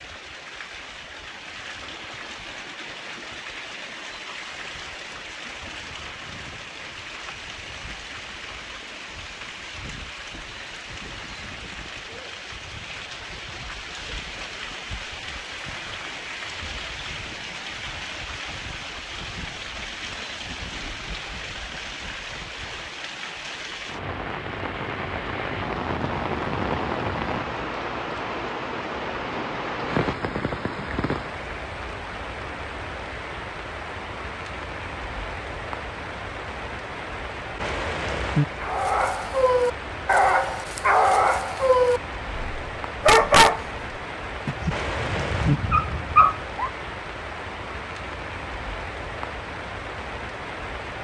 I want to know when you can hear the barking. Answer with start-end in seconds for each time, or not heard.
38.6-43.6, 44.5-46.7.